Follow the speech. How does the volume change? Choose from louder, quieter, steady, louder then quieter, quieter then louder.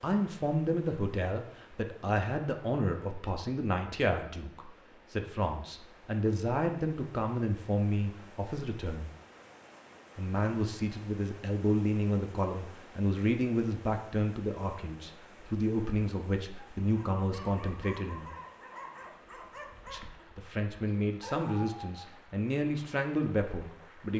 steady.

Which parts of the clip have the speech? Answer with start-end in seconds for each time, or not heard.
0.0-9.1, 10.2-18.3, 19.9-24.1.